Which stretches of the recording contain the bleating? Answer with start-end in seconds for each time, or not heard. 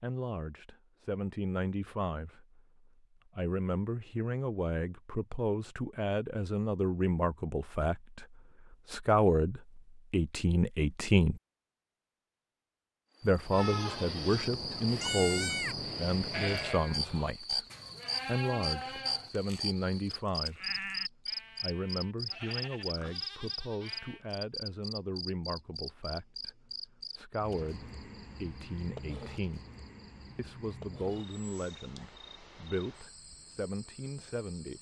13.5-24.2.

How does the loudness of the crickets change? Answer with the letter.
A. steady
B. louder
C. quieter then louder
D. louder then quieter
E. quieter
E.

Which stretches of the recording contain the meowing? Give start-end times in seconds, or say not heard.
not heard.